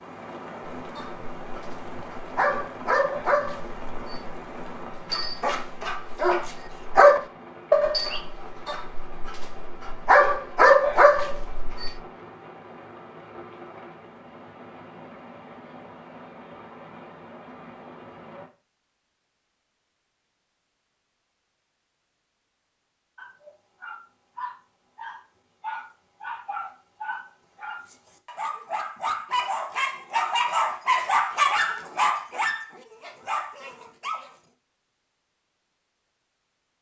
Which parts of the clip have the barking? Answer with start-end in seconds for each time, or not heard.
0.8-12.0, 23.1-34.3.